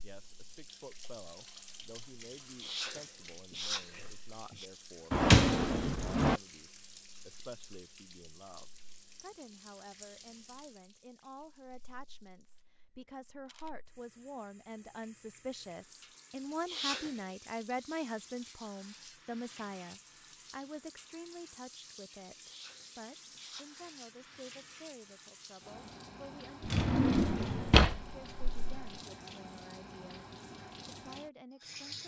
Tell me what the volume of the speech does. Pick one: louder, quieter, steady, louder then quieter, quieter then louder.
louder then quieter.